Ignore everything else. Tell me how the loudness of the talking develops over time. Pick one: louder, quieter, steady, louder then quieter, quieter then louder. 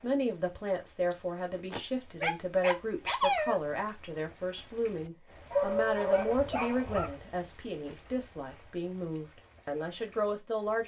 steady.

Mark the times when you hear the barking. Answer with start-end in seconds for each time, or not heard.
1.1-3.6, 5.5-7.2.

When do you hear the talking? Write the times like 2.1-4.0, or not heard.
0.0-10.8.